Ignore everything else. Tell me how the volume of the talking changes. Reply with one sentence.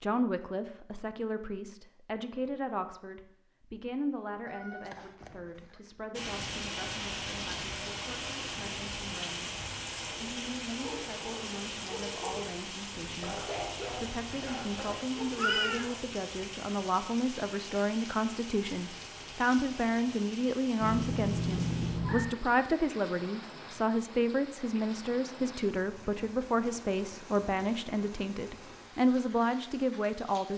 The volume of the talking goes down, then up.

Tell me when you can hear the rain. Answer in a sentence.
The rain can be heard from 6.1 to 30.5 s.